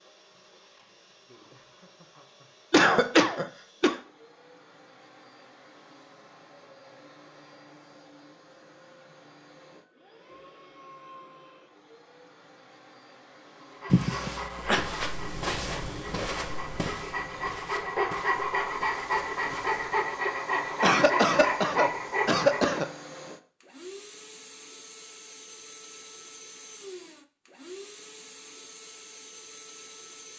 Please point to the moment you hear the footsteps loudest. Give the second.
16 s.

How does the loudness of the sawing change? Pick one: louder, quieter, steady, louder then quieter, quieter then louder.
louder.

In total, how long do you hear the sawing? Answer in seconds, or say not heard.
9 s.